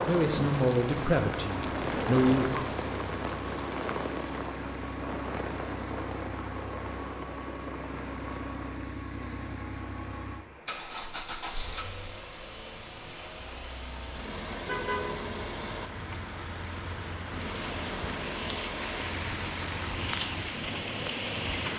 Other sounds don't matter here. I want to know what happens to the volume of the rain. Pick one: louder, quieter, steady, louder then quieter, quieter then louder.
quieter then louder.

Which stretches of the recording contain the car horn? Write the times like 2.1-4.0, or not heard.
14.7-15.6.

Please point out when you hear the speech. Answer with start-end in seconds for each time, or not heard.
0.1-2.6.